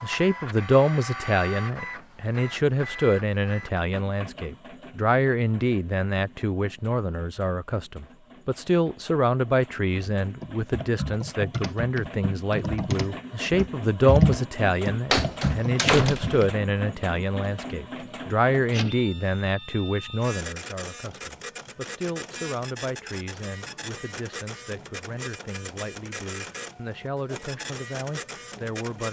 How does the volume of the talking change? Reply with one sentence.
The loudness of the talking goes down.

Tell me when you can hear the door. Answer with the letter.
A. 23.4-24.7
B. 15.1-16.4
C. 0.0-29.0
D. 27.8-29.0
B.